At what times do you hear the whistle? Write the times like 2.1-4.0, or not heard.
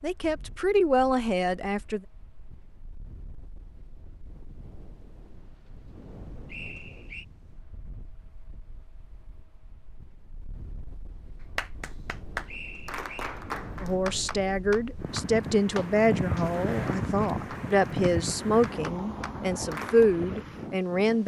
6.5-7.2, 12.4-13.3.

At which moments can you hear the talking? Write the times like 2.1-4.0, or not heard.
0.0-2.0, 13.8-21.2.